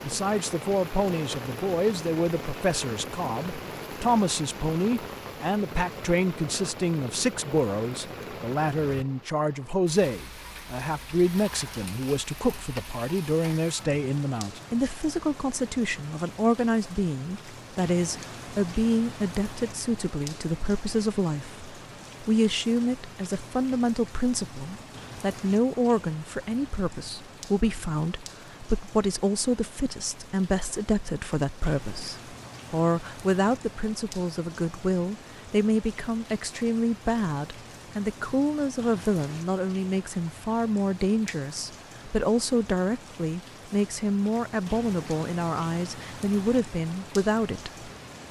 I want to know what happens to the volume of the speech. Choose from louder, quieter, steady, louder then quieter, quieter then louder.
steady.